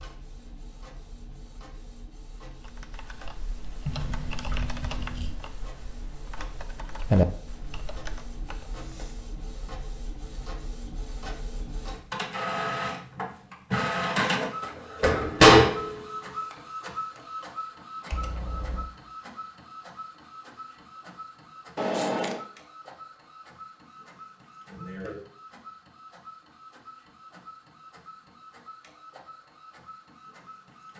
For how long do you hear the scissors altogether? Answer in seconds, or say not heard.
3 s.